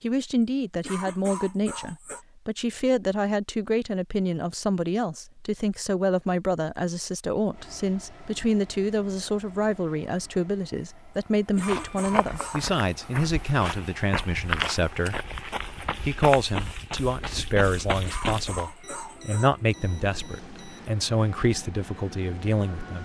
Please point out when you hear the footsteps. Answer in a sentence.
You can hear the footsteps from 11.6 to 18.6 s.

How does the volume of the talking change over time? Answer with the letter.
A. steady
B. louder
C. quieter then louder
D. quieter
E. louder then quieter
A.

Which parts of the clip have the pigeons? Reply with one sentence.
You can't hear the pigeons here.